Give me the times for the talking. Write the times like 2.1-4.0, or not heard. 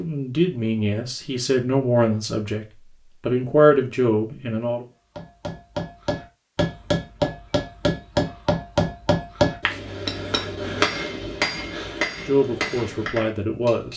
0.0-4.8, 12.2-13.9.